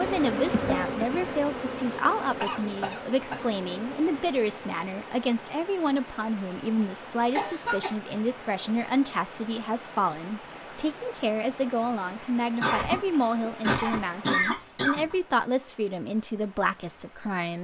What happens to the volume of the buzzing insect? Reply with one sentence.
The loudness of the buzzing insect goes down.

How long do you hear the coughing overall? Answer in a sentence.
The coughing can be heard for 4 seconds in total.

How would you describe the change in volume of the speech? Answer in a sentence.
The loudness of the speech stays about the same.